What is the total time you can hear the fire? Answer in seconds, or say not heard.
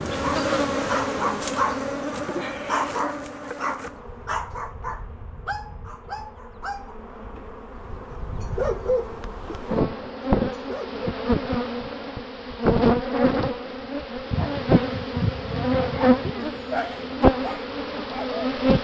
not heard.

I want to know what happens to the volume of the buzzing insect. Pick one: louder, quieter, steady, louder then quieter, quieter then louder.
quieter then louder.